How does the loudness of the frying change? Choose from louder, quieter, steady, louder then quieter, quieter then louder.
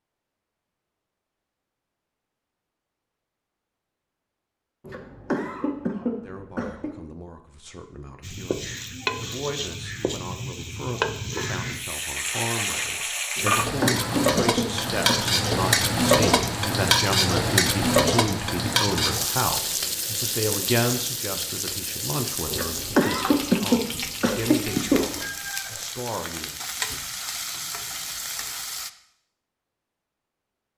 louder then quieter.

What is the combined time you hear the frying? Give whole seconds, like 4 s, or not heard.
21 s.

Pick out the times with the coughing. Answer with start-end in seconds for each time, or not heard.
4.8-6.9, 13.3-15.2, 22.5-25.1.